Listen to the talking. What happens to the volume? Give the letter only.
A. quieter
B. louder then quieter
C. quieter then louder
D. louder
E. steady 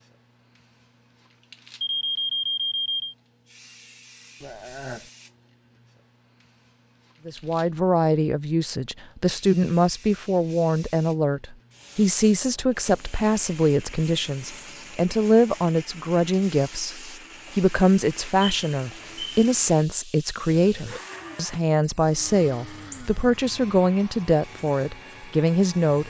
E.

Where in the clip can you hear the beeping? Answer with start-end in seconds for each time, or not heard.
1.8-3.1, 18.4-19.5.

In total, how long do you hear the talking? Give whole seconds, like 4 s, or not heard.
19 s.